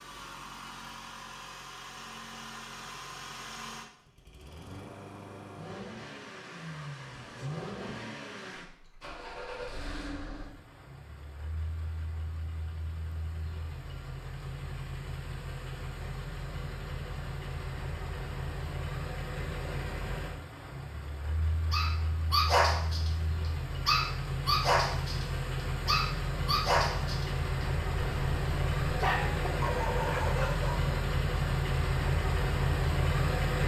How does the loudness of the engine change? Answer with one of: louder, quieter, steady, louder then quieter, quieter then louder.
louder.